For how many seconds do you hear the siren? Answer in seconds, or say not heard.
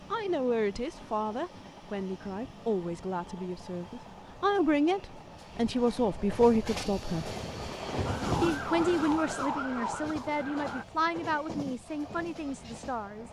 3 s.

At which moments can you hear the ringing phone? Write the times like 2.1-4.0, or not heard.
not heard.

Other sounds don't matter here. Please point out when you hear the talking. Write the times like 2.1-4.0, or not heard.
0.1-7.3, 8.4-13.2.